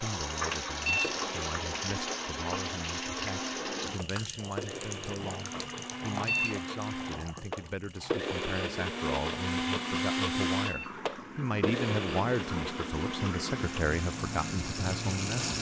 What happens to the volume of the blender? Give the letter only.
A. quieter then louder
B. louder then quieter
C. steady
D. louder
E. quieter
B.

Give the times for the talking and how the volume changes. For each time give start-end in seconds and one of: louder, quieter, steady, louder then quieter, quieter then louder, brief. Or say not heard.
0.0-15.5 louder.